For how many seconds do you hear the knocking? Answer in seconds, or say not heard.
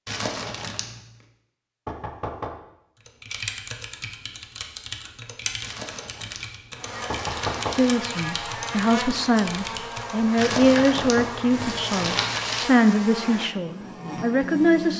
2 s.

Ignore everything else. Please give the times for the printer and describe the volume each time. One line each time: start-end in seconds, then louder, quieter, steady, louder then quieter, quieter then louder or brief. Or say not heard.
not heard.